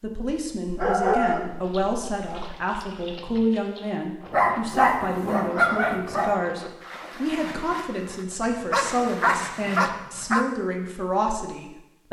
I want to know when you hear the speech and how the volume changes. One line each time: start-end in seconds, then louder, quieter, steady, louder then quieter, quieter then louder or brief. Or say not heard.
0.0-12.0 steady.